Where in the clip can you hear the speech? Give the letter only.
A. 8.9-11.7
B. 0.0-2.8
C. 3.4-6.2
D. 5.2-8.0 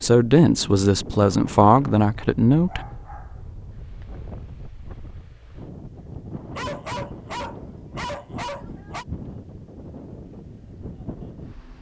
B.